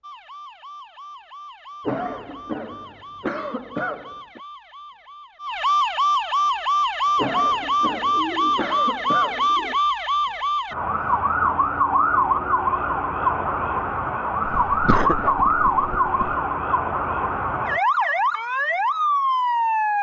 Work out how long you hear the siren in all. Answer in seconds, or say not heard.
20 s.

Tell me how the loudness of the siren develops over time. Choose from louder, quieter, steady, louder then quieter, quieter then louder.
louder.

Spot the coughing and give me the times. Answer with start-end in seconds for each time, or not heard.
1.9-4.4, 7.2-9.5, 14.7-16.4.